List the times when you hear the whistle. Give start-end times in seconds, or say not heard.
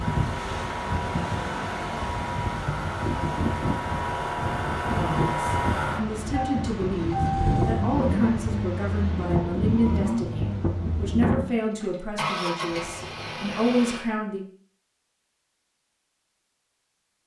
not heard.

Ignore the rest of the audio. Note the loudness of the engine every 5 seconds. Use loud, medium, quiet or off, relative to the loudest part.
loud, loud, loud, off.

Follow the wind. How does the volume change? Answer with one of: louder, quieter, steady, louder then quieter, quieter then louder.
steady.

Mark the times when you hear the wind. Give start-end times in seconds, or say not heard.
0.0-11.4.